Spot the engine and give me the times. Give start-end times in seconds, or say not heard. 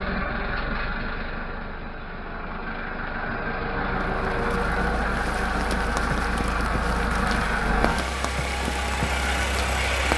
0.0-10.1.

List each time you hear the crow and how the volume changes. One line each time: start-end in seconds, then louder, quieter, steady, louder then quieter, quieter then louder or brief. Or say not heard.
not heard.